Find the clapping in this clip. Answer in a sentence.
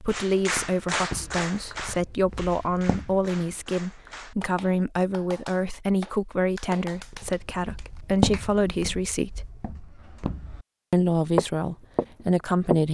You can hear the clapping from 0.1 to 8.4 s.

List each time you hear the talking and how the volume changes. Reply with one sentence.
You can hear the talking from 0.0 to 9.5 s, at a steady volume; and briefly from 10.9 to 12.8 s.